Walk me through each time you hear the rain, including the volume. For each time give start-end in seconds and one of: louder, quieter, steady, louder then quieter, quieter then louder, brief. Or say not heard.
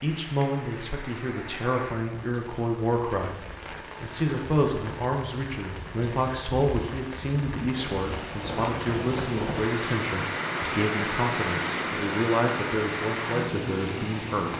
0.0-14.5 louder.